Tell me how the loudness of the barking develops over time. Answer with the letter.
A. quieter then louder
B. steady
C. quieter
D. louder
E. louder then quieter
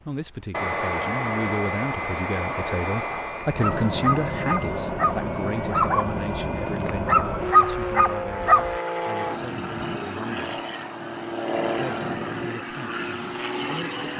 D.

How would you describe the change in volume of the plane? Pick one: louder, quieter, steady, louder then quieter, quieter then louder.
steady.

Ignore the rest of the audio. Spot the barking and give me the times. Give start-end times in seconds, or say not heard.
3.4-8.9.